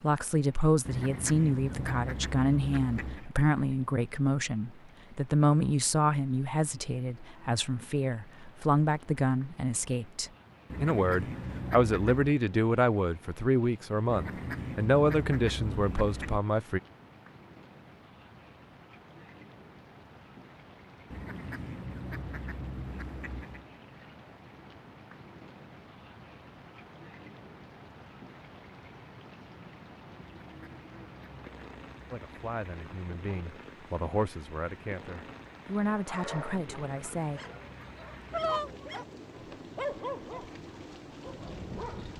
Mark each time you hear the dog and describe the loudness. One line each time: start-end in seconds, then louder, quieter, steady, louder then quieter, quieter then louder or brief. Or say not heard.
36.0-42.1 louder then quieter.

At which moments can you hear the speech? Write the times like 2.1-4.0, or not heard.
0.0-16.8, 32.1-37.4.